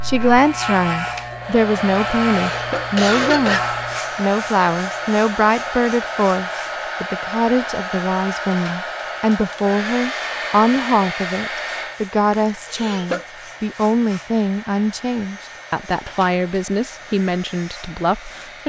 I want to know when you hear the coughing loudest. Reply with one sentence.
The volume of the coughing peaks at 3 seconds.